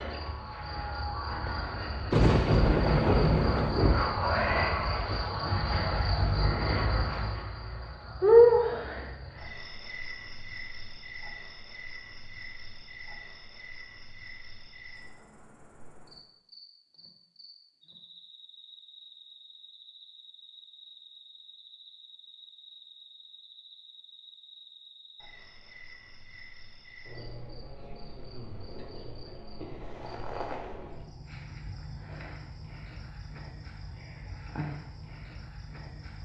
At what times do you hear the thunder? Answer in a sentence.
You can hear the thunder from 2.1 to 4.0 s.